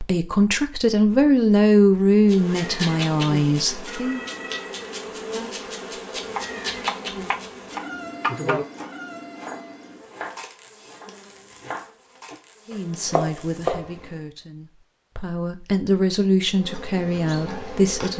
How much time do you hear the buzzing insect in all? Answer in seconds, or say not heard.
14 s.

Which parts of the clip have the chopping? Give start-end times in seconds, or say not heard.
6.2-13.9.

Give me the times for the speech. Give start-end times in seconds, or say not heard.
0.0-4.2, 12.7-18.1.